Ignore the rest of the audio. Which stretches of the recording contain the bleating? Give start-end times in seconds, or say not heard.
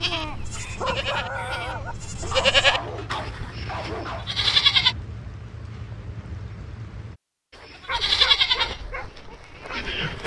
0.0-5.0, 7.9-10.2.